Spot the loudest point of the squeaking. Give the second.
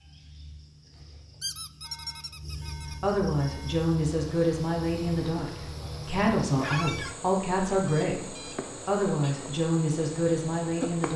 7 s.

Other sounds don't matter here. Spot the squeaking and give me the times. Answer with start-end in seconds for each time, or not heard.
1.4-3.0, 6.6-7.2.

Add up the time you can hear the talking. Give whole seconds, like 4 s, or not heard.
8 s.